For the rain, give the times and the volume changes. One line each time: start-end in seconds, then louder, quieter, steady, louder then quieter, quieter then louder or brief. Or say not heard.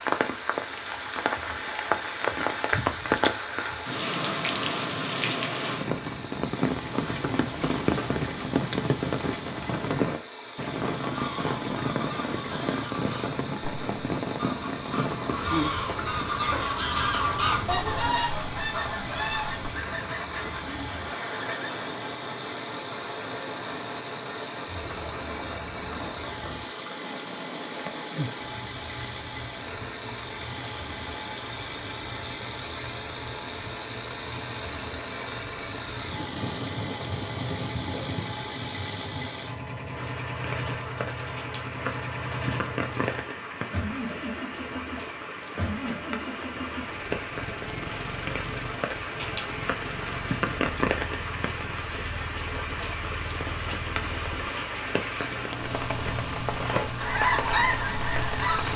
0.0-58.7 quieter then louder.